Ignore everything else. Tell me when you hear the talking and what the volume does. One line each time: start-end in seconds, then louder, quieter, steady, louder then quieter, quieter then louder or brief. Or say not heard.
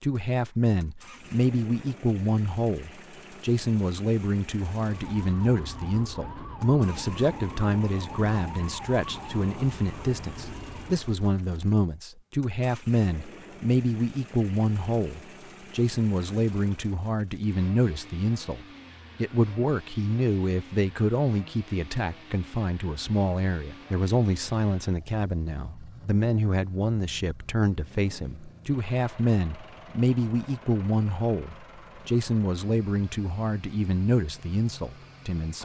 0.0-35.6 steady.